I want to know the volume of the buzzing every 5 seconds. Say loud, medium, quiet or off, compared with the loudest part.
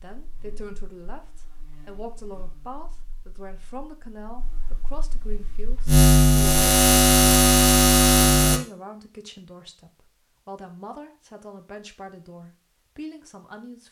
quiet, loud, off.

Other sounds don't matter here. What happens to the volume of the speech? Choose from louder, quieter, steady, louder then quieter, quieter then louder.
steady.